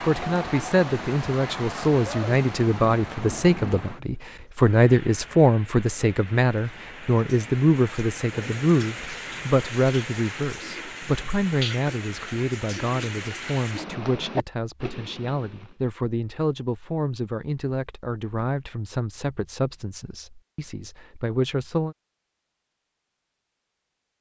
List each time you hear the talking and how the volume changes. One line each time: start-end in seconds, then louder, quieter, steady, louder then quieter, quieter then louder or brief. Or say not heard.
0.0-21.9 quieter.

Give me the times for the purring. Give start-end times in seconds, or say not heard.
not heard.